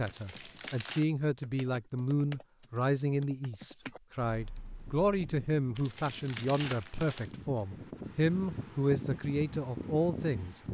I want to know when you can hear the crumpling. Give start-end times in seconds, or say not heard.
0.1-1.1, 5.8-7.3.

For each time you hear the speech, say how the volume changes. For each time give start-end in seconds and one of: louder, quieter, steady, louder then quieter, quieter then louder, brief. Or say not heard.
0.0-10.6 steady.